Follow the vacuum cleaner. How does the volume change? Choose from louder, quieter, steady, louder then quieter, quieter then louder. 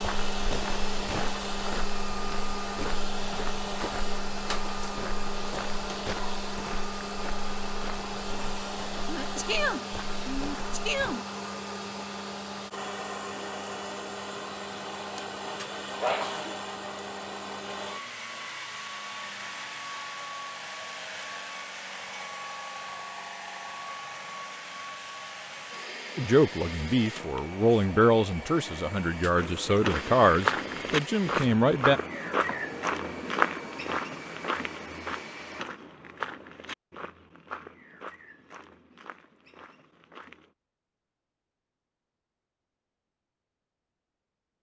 quieter.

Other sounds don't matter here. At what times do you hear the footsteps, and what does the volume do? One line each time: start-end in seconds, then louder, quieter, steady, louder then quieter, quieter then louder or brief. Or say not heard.
0.0-11.2 quieter
29.4-40.5 quieter.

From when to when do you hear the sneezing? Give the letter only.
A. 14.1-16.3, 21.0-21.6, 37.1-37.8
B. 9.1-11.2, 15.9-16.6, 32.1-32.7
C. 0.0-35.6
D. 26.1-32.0
B.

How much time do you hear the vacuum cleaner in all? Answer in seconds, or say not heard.
36 s.